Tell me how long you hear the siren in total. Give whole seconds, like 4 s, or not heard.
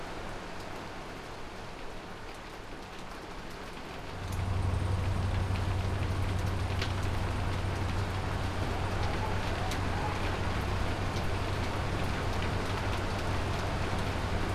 not heard.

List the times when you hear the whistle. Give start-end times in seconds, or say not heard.
not heard.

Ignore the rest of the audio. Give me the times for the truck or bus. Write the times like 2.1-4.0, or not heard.
4.0-14.5.